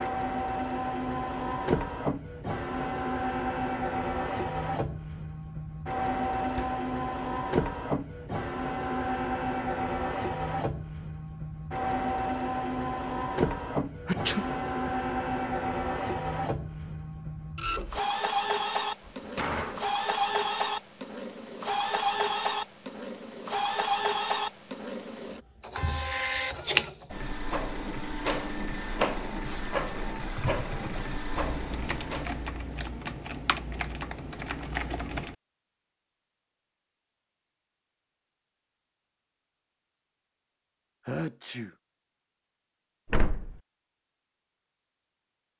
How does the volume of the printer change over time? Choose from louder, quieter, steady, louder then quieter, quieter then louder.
steady.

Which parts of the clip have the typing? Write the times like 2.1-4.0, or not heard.
29.4-35.4.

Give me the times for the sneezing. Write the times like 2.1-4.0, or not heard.
14.1-14.9, 41.0-41.8.